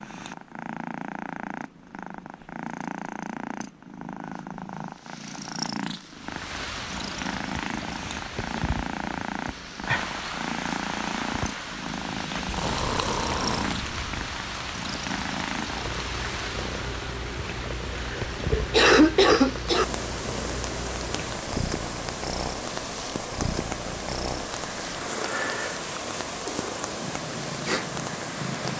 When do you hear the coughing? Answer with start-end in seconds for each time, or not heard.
17.9-19.9.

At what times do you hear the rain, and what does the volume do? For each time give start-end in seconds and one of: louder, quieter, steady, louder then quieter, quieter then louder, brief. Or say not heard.
6.1-28.7 steady.